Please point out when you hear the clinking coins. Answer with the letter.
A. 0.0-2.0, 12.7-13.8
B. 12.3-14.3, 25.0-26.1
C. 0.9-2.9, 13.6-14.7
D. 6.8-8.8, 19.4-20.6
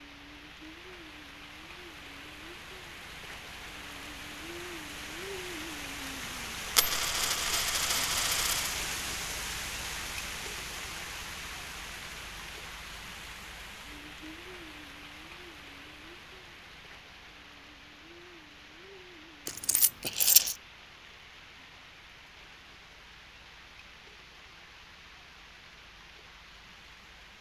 D.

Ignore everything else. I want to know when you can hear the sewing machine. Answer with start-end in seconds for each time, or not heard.
not heard.